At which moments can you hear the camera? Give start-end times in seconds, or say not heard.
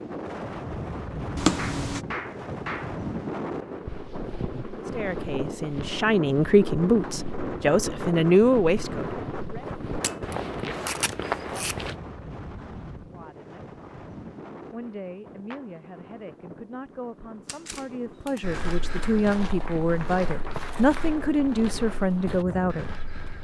1.4-2.0, 10.0-11.8, 17.4-18.4.